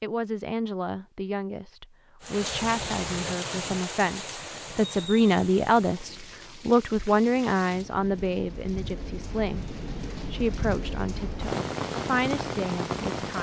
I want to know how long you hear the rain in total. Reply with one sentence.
You can hear the rain for 11 seconds altogether.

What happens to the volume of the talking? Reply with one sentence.
The loudness of the talking goes up, then down.